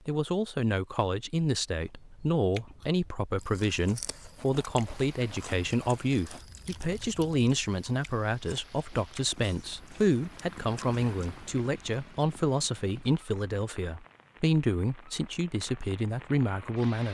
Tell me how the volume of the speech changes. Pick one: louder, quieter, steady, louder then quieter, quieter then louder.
steady.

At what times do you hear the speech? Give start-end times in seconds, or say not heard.
0.1-17.0.